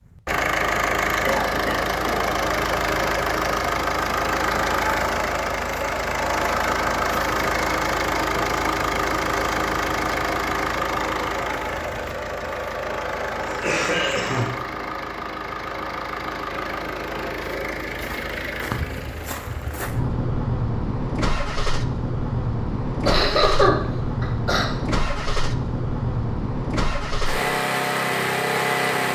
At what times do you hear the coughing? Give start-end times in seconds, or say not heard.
1.2-2.2, 13.3-14.6, 23.1-24.6.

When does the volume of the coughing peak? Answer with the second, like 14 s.
24 s.